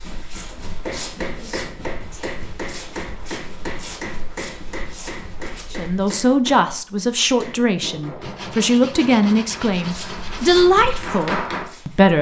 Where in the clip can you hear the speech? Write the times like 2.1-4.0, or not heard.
5.7-12.1.